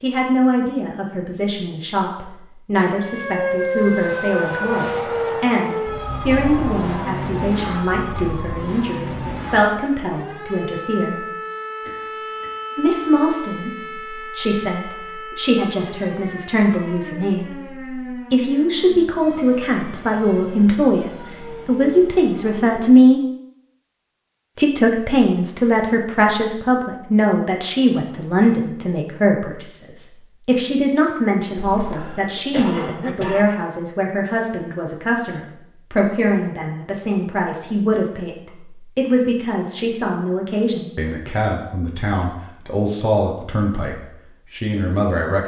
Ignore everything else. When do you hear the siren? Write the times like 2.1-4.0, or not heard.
2.9-22.8.